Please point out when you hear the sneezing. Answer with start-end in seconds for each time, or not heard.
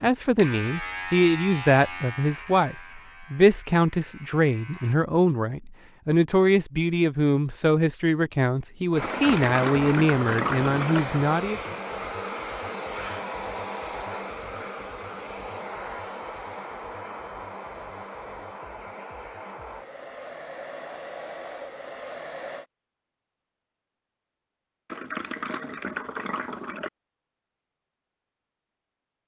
not heard.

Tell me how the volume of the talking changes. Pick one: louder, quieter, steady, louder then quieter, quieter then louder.
steady.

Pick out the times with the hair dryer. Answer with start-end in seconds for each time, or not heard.
8.9-22.6.